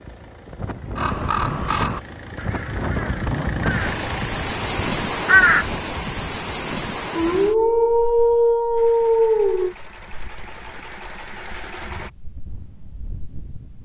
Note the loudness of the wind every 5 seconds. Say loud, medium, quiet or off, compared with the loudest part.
loud, loud, quiet.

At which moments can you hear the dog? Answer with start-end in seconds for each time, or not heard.
7.2-9.8.